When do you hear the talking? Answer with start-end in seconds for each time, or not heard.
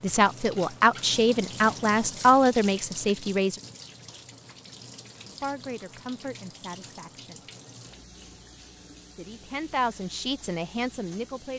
0.0-3.6, 5.3-7.4, 9.2-11.5.